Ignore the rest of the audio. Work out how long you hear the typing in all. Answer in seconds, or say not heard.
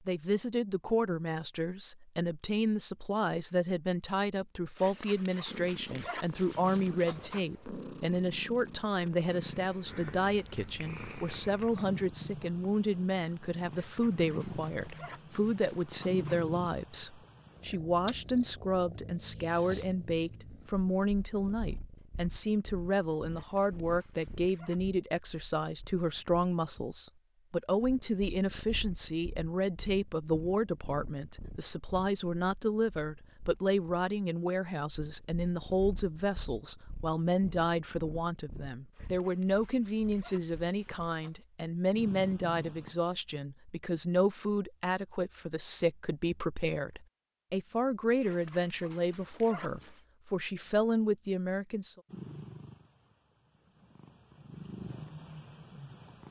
not heard.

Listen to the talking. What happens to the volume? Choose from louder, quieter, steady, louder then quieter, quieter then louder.
steady.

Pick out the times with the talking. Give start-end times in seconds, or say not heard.
0.1-52.0.